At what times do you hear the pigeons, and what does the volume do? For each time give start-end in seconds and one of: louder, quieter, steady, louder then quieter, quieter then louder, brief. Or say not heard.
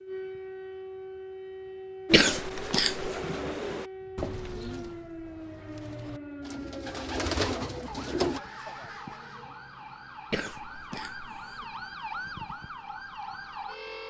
2.0-8.4 quieter then louder.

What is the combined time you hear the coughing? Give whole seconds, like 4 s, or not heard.
2 s.